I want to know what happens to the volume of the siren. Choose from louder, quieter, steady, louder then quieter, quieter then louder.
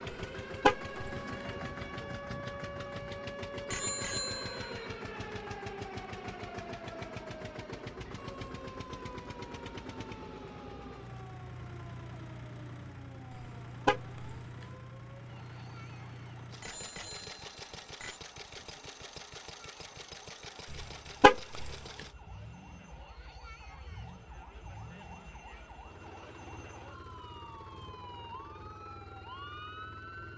quieter then louder.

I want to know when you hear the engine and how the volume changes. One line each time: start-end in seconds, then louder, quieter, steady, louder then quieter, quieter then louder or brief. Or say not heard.
0.0-30.3 quieter.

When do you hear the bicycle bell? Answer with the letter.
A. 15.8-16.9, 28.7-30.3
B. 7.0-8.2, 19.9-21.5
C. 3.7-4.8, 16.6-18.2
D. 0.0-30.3
C.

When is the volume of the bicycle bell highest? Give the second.
4 s.